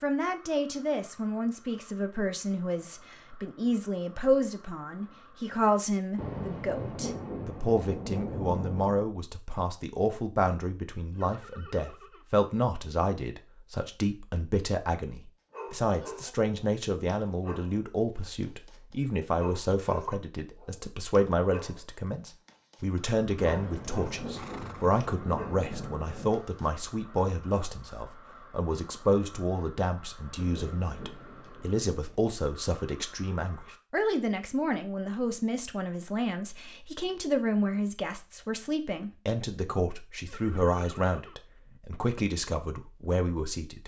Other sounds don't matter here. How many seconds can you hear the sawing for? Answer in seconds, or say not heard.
not heard.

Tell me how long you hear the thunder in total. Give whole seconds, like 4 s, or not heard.
8 s.